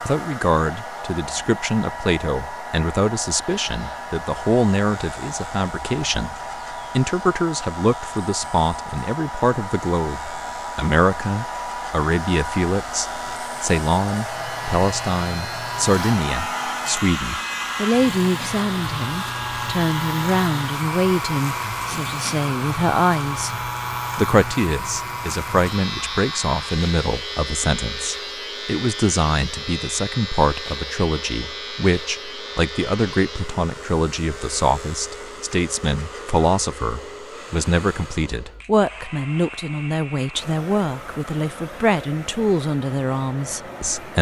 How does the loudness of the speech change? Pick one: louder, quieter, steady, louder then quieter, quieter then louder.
steady.